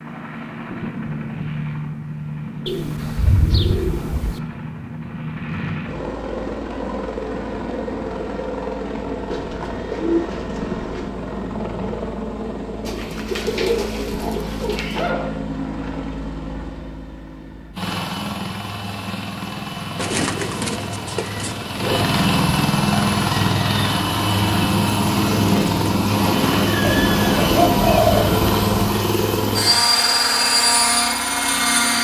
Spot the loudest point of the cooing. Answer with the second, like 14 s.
28 s.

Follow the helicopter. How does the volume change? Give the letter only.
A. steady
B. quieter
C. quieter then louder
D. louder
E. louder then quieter
D.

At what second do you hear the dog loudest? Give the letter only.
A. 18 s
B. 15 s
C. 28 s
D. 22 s
B.